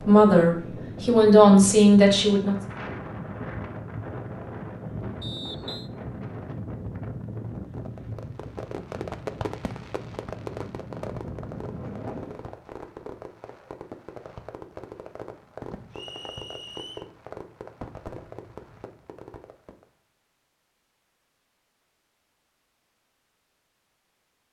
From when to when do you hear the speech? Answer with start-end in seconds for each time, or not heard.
0.0-2.5.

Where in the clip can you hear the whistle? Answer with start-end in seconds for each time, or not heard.
5.2-5.9, 15.9-17.1.